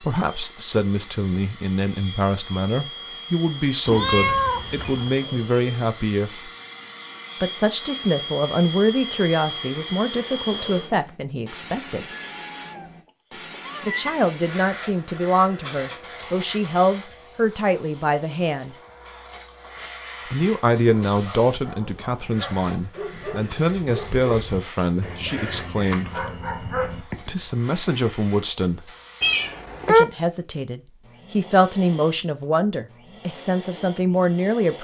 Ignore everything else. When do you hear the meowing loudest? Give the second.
30 s.